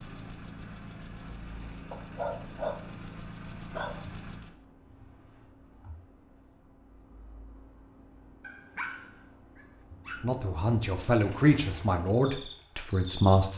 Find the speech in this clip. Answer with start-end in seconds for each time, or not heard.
10.2-13.5.